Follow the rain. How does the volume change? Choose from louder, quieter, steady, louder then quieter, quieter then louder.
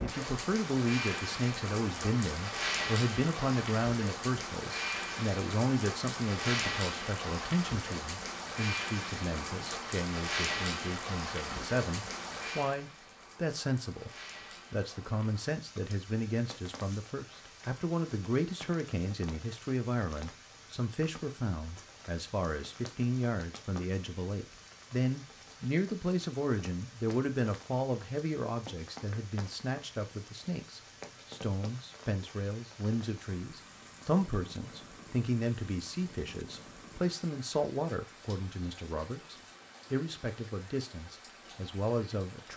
quieter.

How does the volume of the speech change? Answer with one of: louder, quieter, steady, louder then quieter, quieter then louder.
steady.